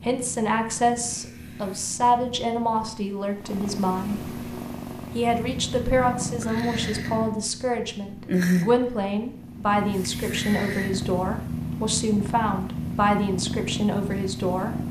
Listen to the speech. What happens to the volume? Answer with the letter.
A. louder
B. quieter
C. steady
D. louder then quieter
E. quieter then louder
C.